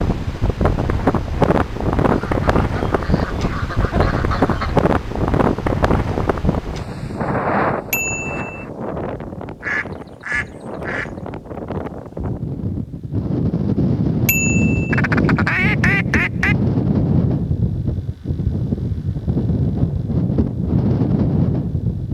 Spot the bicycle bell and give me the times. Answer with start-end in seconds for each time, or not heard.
7.9-8.7, 14.2-14.9.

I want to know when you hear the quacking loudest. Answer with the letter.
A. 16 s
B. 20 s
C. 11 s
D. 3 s
A.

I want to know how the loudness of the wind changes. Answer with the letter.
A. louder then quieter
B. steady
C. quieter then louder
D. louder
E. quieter
C.